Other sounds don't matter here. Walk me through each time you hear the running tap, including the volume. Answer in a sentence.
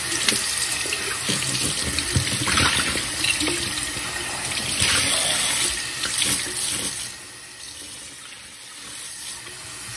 You can hear the running tap from 0.0 to 9.9 s, getting quieter.